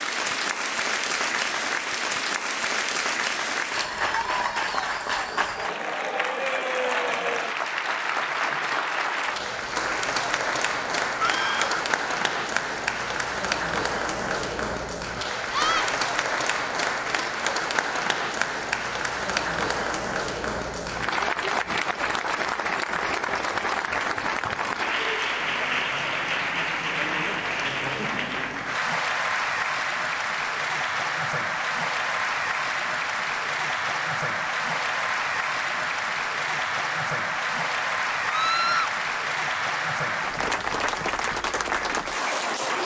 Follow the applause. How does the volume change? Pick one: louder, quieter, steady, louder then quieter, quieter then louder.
steady.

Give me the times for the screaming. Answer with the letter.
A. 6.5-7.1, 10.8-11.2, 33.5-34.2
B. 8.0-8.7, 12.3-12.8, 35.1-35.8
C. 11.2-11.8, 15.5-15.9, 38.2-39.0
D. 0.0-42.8
C.